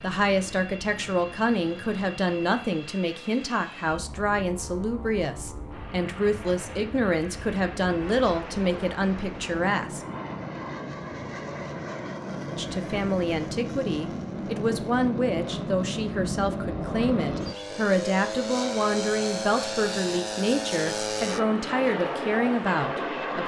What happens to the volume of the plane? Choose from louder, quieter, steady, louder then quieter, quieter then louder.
louder.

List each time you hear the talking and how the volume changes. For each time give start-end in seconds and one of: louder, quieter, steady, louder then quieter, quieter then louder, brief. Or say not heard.
0.0-10.0 steady
12.6-23.4 steady.